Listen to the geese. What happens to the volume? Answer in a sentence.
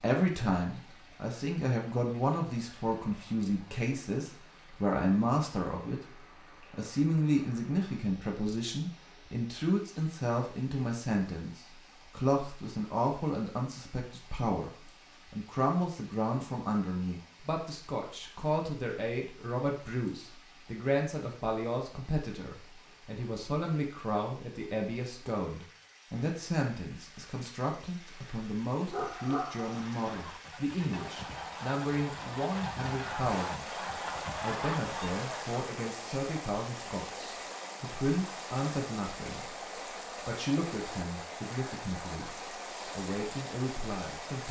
The volume of the geese goes up.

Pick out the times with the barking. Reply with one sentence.
The barking can be heard from 28.9 to 29.9 s.